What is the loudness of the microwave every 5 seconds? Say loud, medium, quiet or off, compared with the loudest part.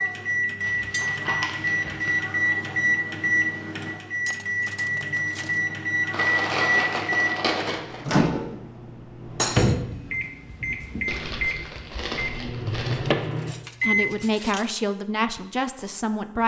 loud, loud, loud, off.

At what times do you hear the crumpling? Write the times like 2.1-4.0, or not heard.
0.6-2.2, 6.1-8.1, 11.1-13.1.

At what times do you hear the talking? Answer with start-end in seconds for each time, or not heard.
13.8-16.4.